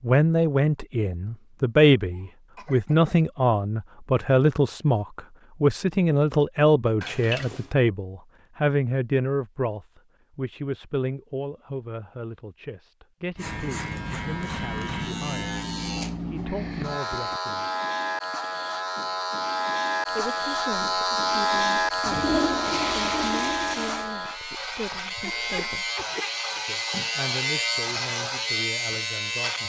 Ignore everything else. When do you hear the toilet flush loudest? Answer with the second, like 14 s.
23 s.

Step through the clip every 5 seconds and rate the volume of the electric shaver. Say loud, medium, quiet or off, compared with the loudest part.
off, off, medium, loud, loud, loud.